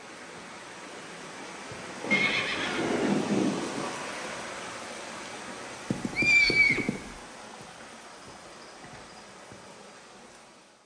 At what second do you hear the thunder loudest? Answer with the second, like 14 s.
3 s.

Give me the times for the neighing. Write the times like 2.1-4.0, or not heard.
2.1-3.2, 5.9-7.1.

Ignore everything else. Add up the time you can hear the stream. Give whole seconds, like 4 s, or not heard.
11 s.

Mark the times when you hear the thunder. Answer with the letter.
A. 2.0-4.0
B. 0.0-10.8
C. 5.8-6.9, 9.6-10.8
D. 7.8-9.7
A.